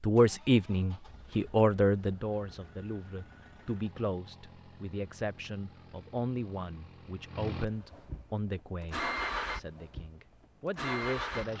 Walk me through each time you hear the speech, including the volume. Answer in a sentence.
The speech can be heard from 0.0 to 11.5 s, getting quieter.